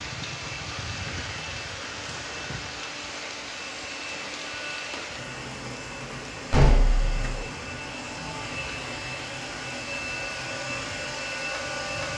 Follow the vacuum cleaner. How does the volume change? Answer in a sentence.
The loudness of the vacuum cleaner goes up.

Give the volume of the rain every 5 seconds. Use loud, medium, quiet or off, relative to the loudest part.
loud, loud, medium.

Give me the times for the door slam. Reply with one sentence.
The door slam can be heard from 6.5 to 7.5 s.